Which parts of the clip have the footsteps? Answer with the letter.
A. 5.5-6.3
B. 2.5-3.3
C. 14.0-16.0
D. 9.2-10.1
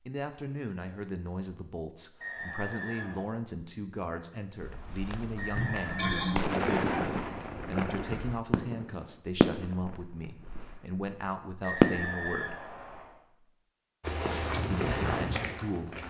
C.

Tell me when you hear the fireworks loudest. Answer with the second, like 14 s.
12 s.